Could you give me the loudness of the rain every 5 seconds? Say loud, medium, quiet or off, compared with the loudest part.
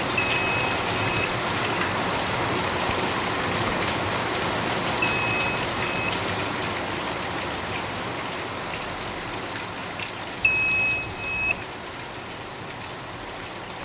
loud, loud, medium.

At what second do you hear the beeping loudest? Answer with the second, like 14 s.
11 s.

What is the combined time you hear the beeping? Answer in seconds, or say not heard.
3 s.